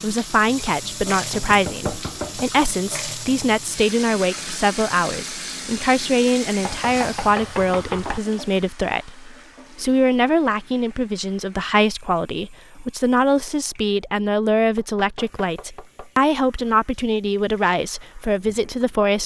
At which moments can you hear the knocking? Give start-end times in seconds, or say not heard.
1.3-2.5, 6.7-8.2, 14.8-16.1.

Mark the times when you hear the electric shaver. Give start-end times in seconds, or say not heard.
not heard.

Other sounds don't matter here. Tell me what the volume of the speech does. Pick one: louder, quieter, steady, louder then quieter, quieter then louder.
steady.